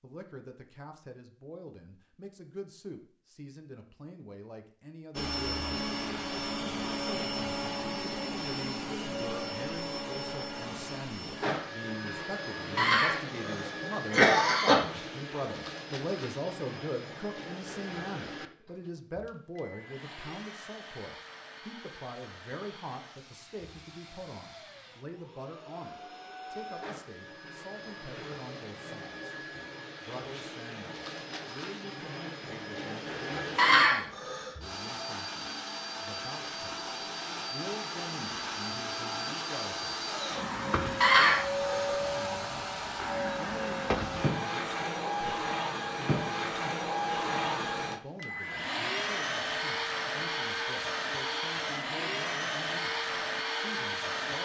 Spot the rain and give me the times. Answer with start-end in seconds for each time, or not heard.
not heard.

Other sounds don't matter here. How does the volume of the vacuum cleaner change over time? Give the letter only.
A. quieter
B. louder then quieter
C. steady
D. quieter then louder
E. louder
D.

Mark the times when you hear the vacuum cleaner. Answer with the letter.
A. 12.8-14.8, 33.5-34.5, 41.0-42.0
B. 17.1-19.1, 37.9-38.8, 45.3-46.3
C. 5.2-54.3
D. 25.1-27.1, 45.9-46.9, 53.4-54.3
C.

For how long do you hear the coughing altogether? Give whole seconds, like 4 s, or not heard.
4 s.